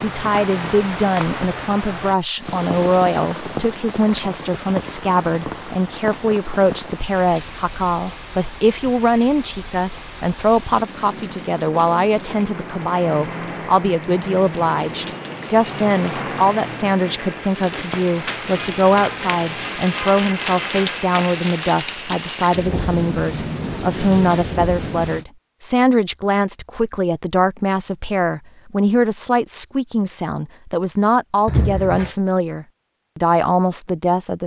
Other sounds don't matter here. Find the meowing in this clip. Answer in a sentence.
You can hear the meowing from 31.4 to 32.1 s.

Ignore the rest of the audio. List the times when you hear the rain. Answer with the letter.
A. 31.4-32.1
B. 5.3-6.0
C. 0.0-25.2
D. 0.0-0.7
C.